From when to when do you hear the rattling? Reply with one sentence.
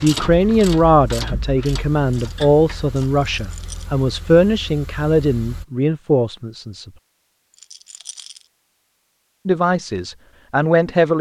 You can hear the rattling from 3.4 to 3.9 s and from 7.5 to 8.4 s.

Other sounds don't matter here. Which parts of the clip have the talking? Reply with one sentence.
The talking can be heard from 0.0 to 6.9 s and from 9.4 to 11.1 s.